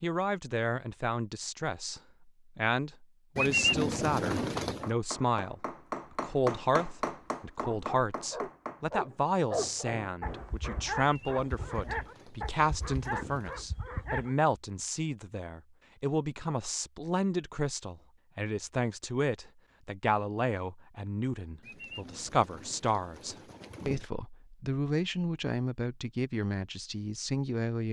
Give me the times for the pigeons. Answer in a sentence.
You can hear the pigeons from 3.4 to 4.9 s, from 10.9 to 13.6 s and from 21.6 to 24.1 s.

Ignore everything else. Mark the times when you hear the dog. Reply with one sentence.
You can hear the dog from 7.7 to 14.3 s.